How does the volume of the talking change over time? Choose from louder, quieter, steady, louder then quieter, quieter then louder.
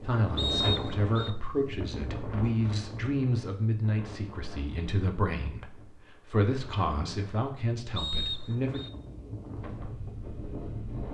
steady.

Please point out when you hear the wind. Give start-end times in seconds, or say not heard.
0.0-11.0.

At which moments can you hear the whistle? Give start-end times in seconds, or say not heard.
0.3-1.3, 8.0-8.9.